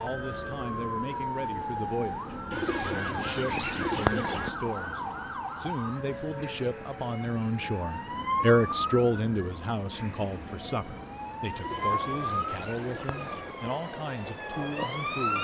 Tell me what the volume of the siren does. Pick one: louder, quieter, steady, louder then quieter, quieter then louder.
steady.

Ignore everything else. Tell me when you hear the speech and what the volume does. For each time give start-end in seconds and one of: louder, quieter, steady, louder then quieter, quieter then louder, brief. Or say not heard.
0.0-15.3 louder then quieter.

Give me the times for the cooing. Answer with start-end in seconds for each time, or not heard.
2.5-4.5, 11.5-13.6.